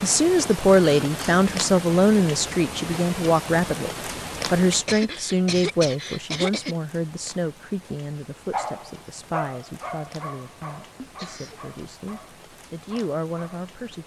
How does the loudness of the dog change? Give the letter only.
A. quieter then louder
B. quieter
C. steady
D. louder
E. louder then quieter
B.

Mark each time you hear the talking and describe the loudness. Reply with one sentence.
The talking can be heard from 0.0 to 14.0 s, getting quieter.